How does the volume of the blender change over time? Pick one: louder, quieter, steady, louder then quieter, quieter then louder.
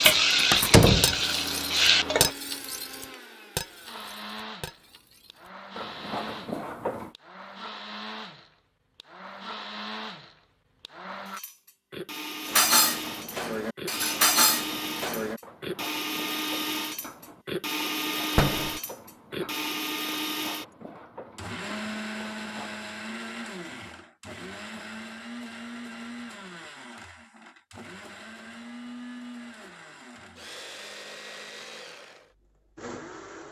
louder then quieter.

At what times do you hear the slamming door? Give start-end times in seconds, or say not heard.
0.5-1.1, 18.4-18.8.